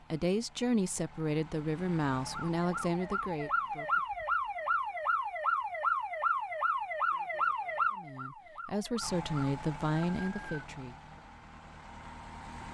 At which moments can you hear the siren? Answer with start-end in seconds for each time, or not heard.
2.2-10.7.